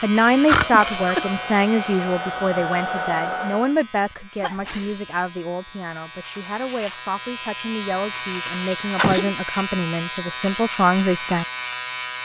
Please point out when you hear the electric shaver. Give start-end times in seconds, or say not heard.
0.0-12.1.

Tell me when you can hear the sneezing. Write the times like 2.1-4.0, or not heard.
0.5-1.3, 4.4-5.0, 8.4-9.3.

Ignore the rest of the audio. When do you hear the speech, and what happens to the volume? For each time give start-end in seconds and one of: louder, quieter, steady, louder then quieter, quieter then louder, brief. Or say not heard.
0.0-11.4 quieter then louder.